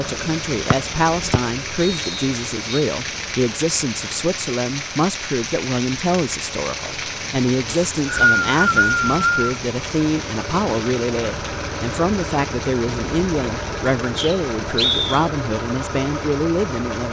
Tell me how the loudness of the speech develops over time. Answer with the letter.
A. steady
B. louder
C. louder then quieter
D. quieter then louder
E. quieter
A.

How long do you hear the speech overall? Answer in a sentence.
The speech can be heard for 17 seconds in total.